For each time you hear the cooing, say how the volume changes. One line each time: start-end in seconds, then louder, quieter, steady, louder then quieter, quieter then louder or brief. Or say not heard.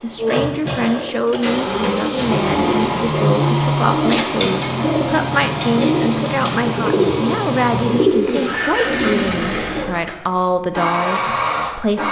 0.1-9.9 louder.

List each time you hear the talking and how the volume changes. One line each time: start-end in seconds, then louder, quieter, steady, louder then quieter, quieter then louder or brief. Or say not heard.
0.0-12.0 steady.